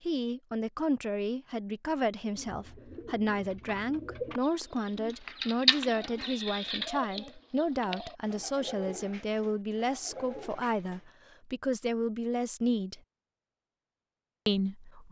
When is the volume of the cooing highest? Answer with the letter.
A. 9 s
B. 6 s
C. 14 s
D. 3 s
B.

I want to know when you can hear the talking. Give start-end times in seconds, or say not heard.
0.1-13.0, 14.4-15.0.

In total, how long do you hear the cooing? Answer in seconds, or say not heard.
9 s.